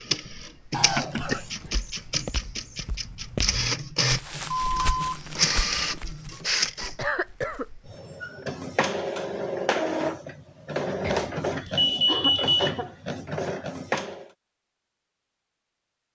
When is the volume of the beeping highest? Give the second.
12 s.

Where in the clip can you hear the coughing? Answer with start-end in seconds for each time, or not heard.
0.7-1.8, 7.0-7.7, 12.1-12.9.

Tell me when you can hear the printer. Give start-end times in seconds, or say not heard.
0.0-14.3.